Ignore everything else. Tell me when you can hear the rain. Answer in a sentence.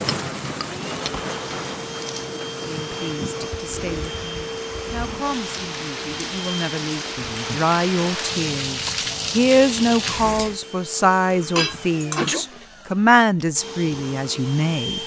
You can hear the rain from 0.0 to 10.6 s.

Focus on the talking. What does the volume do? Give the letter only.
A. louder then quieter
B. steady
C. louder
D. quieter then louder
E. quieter
C.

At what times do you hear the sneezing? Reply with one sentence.
The sneezing can be heard from 11.7 to 12.7 s.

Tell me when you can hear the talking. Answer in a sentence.
You can hear the talking from 2.6 to 15.0 s.